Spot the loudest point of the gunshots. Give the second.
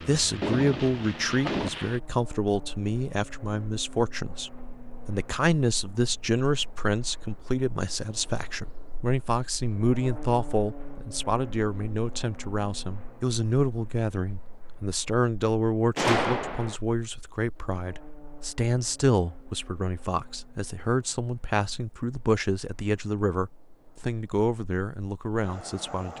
16 s.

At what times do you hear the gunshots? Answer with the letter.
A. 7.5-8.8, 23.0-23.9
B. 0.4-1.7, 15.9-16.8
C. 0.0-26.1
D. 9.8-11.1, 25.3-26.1
B.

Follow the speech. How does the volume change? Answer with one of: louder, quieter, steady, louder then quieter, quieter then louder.
steady.